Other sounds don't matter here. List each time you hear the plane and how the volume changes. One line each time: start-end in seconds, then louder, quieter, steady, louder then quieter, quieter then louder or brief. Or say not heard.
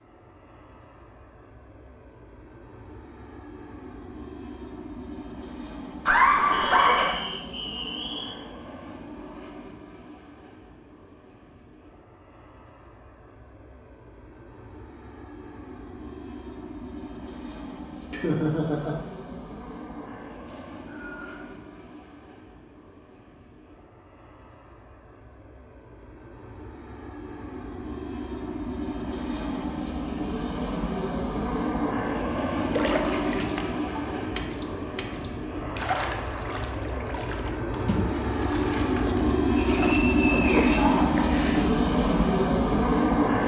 0.0-43.4 louder.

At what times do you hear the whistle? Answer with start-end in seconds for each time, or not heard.
6.5-8.3, 20.4-21.5, 39.5-41.0.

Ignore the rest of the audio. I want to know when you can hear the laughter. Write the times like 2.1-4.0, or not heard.
6.0-7.2, 18.1-19.4, 40.8-41.2.